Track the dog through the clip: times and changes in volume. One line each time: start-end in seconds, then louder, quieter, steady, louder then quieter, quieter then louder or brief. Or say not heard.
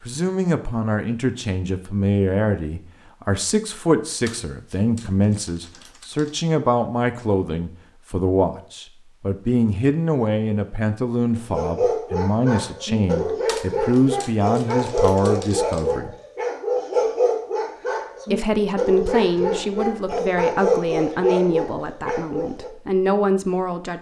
11.5-22.7 steady.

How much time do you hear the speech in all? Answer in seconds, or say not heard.
22 s.